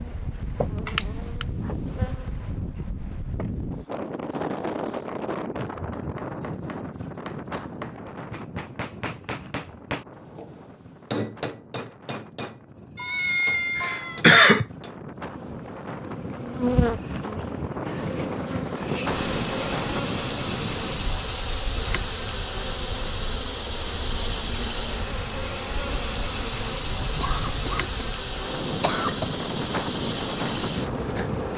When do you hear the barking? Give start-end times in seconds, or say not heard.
not heard.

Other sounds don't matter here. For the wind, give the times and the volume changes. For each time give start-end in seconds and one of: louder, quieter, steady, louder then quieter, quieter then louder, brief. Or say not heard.
0.0-31.5 quieter then louder.